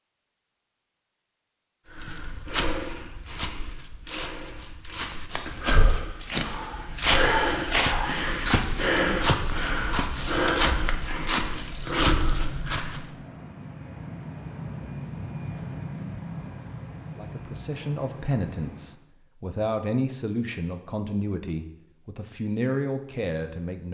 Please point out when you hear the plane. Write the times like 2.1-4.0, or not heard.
11.6-19.0.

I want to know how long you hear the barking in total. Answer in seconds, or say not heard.
2 s.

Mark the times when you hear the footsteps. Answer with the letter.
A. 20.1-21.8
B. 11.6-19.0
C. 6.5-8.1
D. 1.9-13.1
D.